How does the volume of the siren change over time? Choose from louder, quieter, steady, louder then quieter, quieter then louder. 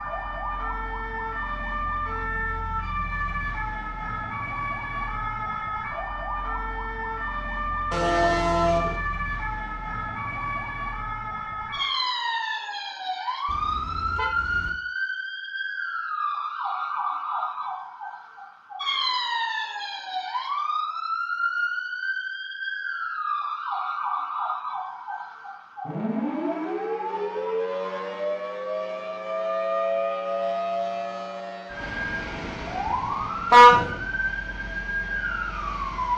steady.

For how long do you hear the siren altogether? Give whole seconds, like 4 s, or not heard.
36 s.